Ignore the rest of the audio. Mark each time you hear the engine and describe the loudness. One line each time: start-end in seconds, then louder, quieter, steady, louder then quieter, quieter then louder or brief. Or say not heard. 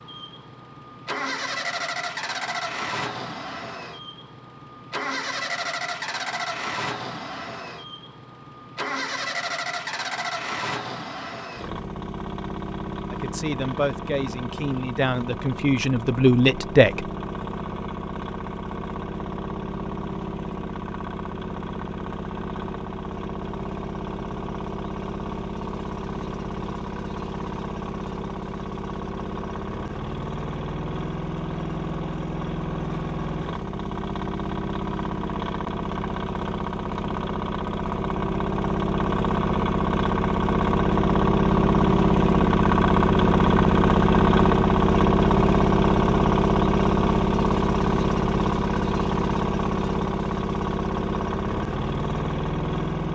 0.0-53.1 louder.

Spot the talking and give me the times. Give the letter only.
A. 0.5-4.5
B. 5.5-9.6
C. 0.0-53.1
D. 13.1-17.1
D.